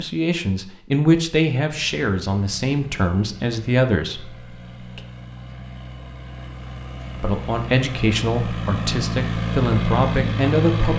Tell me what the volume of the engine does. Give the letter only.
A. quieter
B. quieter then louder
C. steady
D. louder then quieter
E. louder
E.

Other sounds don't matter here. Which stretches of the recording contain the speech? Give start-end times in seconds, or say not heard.
0.0-5.0, 7.2-10.9.